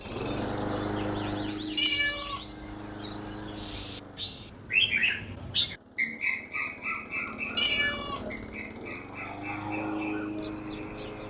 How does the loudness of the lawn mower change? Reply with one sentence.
The loudness of the lawn mower goes down, then up.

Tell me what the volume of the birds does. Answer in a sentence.
The loudness of the birds goes up, then down.